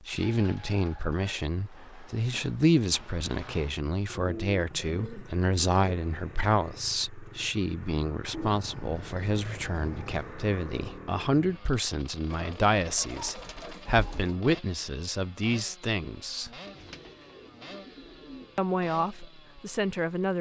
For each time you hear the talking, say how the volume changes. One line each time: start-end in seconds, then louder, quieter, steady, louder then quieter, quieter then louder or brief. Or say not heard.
0.1-16.5 steady
18.6-20.3 brief.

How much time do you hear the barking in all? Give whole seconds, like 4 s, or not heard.
not heard.